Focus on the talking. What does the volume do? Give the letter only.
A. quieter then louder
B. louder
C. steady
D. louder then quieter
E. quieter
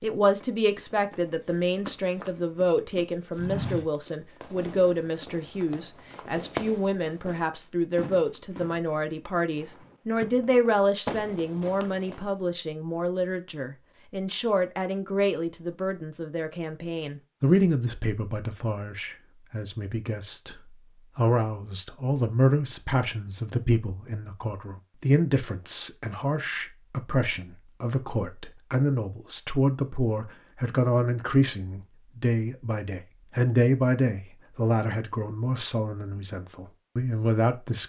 C.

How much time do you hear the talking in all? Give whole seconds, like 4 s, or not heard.
38 s.